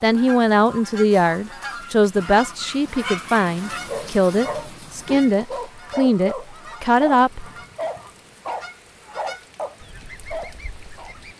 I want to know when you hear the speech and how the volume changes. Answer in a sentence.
The speech can be heard from 0.0 to 7.5 s, at a steady volume.